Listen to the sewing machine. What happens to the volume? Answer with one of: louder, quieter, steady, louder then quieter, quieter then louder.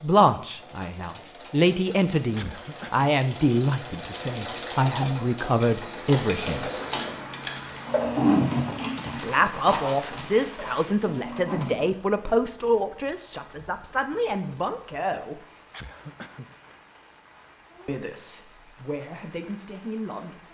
louder then quieter.